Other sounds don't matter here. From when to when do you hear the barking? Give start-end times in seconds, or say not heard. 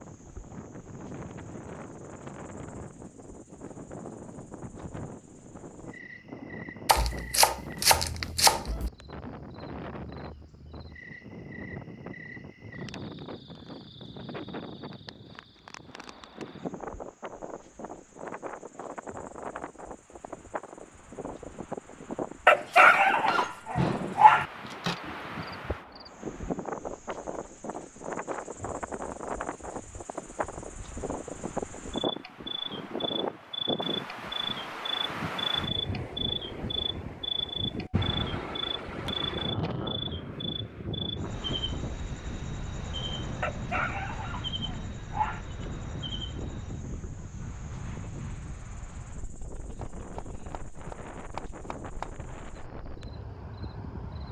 22.4-24.4, 43.4-45.4.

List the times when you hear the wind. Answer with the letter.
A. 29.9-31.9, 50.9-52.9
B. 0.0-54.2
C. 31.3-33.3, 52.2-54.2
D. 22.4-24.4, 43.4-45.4
B.